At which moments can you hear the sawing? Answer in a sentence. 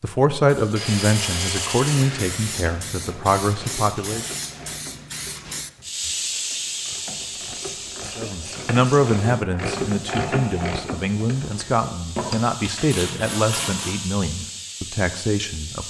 You can hear the sawing from 0.8 to 2.6 s, from 7.1 to 9.1 s and from 12.2 to 13.9 s.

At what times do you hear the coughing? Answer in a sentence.
The coughing can't be heard in this clip.